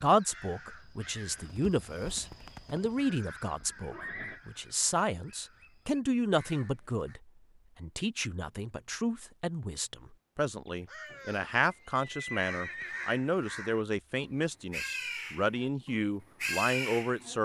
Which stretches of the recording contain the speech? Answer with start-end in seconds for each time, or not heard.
0.0-17.4.